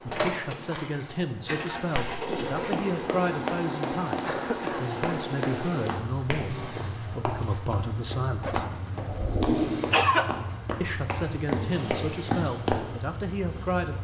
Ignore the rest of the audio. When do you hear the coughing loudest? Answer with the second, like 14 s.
10 s.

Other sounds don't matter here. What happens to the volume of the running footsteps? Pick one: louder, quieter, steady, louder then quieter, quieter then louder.
quieter then louder.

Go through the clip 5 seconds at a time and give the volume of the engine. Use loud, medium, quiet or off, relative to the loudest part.
loud, loud, medium.